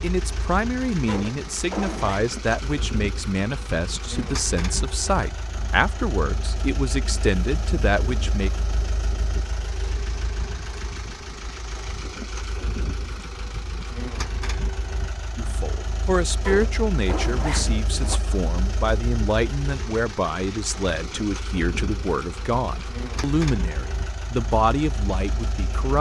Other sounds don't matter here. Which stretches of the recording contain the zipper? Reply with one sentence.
The zipper can be heard from 1.1 to 2.2 s and from 16.4 to 18.2 s.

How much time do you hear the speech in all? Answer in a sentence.
You can hear the speech for 19 seconds altogether.